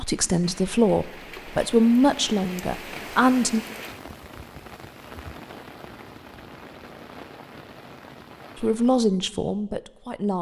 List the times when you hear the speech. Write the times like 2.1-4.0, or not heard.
0.0-3.6, 8.6-10.3.